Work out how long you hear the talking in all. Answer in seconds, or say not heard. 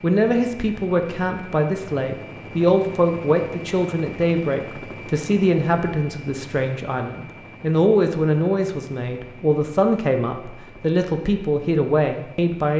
13 s.